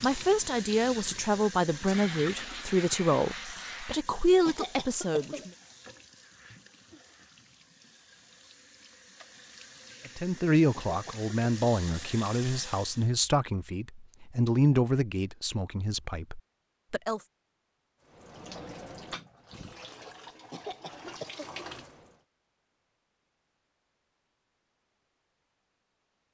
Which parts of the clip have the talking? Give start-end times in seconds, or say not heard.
0.0-5.5, 10.1-17.2.